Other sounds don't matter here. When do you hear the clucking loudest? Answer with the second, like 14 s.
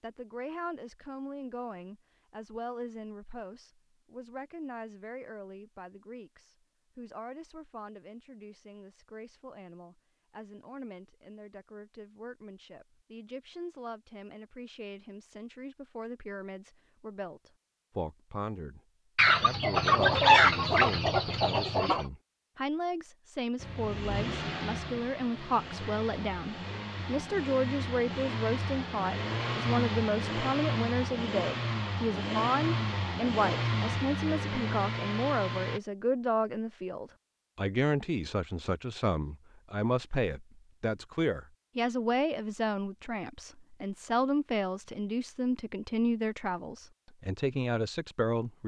20 s.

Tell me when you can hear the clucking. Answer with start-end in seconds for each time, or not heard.
19.1-22.1.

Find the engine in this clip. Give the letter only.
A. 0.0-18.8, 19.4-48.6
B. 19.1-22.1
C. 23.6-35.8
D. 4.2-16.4
C.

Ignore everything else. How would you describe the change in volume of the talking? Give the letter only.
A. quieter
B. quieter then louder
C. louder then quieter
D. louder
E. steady
D.